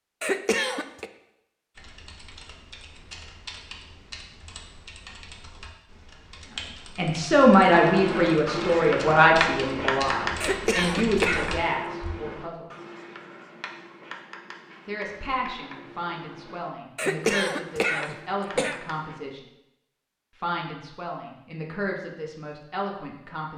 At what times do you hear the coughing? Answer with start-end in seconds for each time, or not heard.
0.2-1.1, 10.4-11.6, 16.9-18.8.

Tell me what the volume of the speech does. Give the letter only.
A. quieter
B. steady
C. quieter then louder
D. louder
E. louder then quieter
A.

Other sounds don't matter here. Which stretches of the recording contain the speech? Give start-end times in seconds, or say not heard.
7.0-12.7, 14.8-19.4, 20.4-23.5.